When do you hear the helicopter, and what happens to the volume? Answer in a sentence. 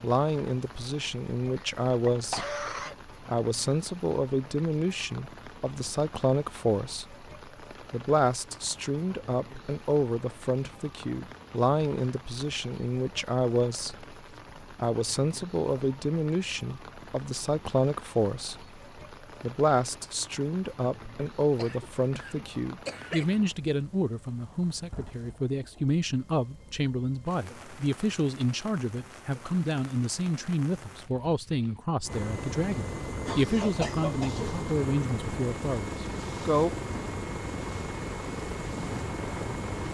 The helicopter can be heard from 32.0 to 39.8 s, at a steady volume.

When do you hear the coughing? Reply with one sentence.
You can hear the coughing from 1.6 to 3.0 s, from 21.6 to 23.4 s and from 33.2 to 34.6 s.